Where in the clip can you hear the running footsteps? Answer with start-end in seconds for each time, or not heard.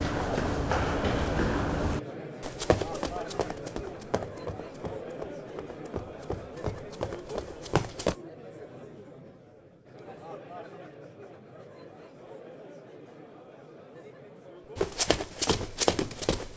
0.0-8.2, 14.8-16.5.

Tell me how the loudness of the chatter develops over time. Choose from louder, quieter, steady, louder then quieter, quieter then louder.
quieter.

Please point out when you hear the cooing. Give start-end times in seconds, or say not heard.
not heard.